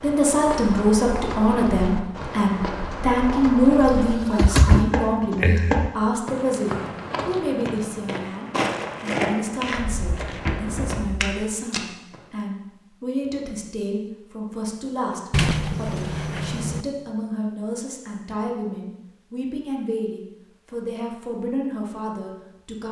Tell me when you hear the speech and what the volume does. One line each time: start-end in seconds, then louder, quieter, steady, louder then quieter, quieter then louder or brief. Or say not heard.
0.0-22.8 quieter.